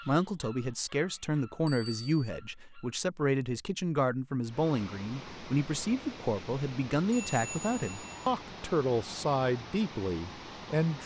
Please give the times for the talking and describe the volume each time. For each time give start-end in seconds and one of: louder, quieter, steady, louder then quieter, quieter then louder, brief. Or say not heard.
0.0-11.0 steady.